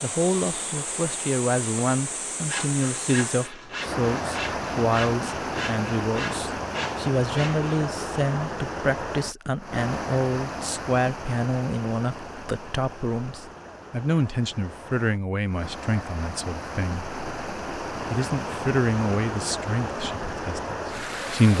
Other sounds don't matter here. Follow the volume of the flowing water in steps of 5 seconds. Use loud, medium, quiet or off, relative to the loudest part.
loud, loud, medium, loud, loud.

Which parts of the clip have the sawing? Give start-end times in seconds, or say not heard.
2.5-7.8.